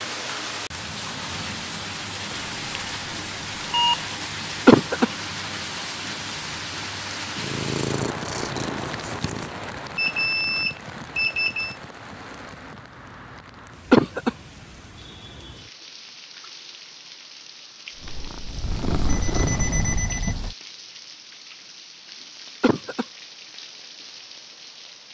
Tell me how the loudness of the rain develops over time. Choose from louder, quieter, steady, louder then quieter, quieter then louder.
quieter.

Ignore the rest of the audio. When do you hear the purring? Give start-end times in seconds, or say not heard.
7.3-9.5, 17.9-20.1.